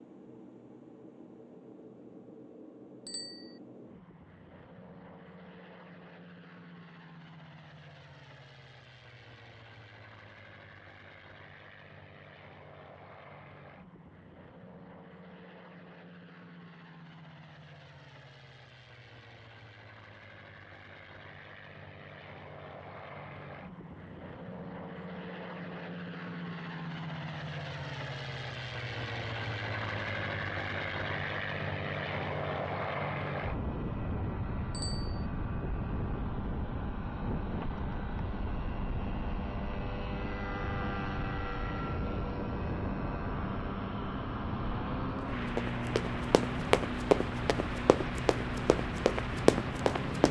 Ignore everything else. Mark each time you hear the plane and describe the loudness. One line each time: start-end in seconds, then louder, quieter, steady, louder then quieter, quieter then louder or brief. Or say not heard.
0.0-50.2 louder.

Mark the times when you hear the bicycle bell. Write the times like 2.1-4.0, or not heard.
3.0-3.5, 34.7-35.2.